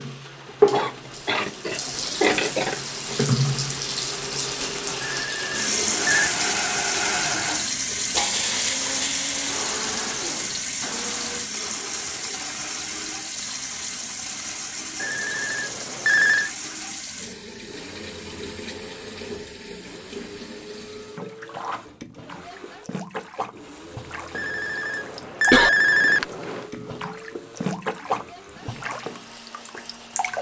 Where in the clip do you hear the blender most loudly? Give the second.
9 s.